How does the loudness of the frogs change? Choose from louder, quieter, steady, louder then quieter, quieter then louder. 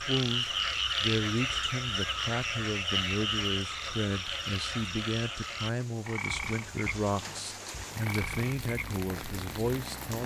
quieter.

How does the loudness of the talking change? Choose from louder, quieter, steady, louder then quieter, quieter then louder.
steady.